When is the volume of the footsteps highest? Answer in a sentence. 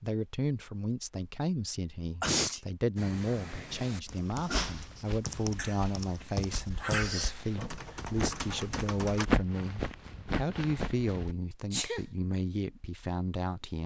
The volume of the footsteps peaks at 9 seconds.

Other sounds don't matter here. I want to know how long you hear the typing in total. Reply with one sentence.
The typing can be heard for 6 seconds in total.